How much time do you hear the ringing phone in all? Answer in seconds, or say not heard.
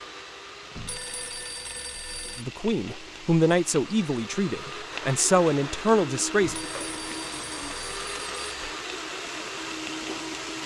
4 s.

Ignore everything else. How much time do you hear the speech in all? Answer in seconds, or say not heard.
4 s.